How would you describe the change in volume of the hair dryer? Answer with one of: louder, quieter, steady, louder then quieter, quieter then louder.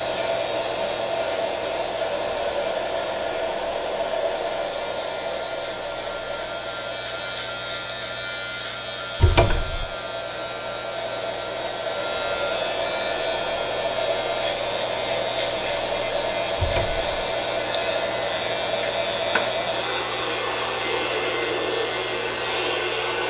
quieter then louder.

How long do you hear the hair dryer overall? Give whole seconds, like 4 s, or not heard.
23 s.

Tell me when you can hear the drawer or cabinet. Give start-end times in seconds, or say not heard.
9.2-9.8, 16.6-17.1.